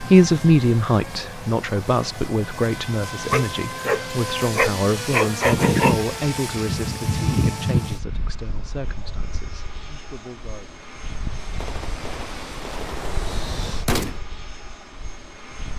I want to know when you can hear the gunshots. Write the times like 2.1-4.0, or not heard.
11.6-14.2.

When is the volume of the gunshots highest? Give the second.
14 s.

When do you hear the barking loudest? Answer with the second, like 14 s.
5 s.